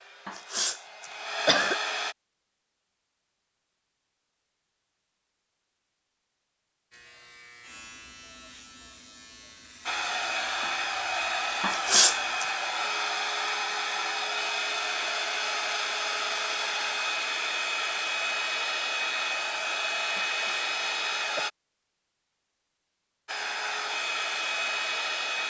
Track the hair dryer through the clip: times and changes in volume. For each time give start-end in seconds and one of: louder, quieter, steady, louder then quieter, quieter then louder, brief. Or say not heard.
0.0-2.1 brief
9.8-21.5 steady
23.2-25.4 brief.